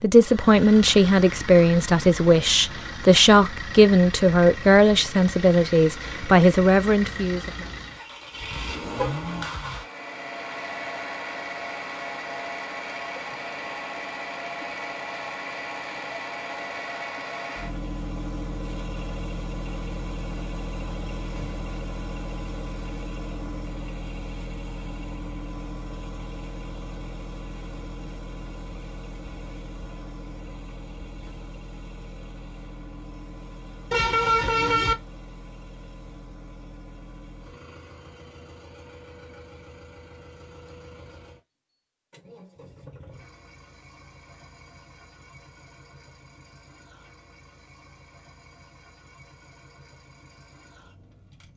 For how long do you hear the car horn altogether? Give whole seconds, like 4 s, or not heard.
2 s.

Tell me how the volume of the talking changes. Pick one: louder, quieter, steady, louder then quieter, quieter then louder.
steady.